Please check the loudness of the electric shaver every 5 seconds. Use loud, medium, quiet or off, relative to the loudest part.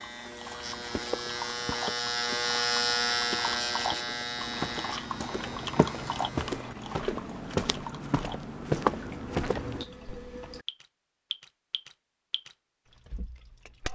loud, quiet, off.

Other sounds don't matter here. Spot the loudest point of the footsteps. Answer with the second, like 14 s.
9 s.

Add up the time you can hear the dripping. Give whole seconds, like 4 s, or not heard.
14 s.